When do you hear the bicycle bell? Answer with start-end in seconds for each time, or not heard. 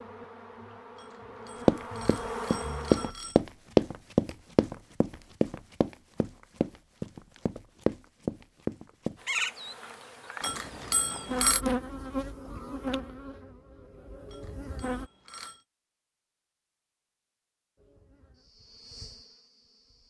0.9-3.4, 10.4-11.6, 14.3-15.6.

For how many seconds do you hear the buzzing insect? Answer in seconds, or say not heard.
11 s.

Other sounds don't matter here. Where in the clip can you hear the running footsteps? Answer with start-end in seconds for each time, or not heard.
1.6-9.2.